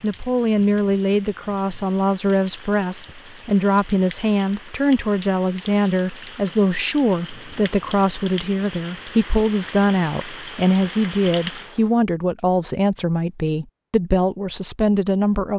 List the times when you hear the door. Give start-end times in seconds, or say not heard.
not heard.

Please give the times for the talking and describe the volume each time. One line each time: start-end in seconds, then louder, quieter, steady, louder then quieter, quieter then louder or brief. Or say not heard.
0.0-15.5 steady.